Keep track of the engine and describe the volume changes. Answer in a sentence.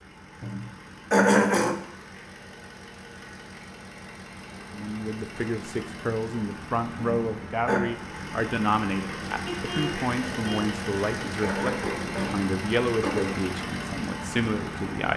The loudness of the engine goes up.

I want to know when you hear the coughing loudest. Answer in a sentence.
The loudest moment of the coughing is at 1 second.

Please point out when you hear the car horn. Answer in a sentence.
You can hear the car horn from 9.4 to 10.7 s.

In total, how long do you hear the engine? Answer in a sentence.
The engine can be heard for 15 seconds in total.